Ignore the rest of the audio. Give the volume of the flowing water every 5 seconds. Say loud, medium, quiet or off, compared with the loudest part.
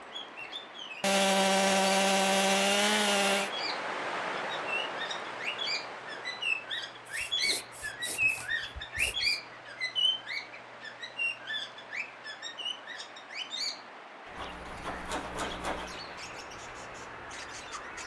loud, medium, medium, medium.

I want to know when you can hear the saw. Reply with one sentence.
You can hear the saw from 1.0 to 3.5 s, from 7.0 to 9.4 s and from 14.3 to 16.0 s.